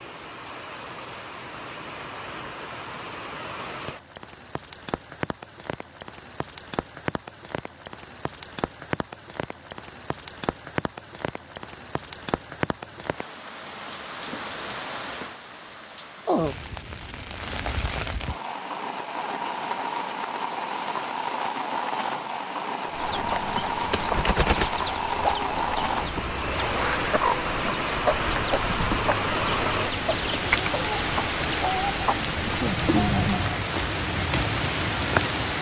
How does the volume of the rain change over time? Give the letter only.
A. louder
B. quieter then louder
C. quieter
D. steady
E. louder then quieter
A.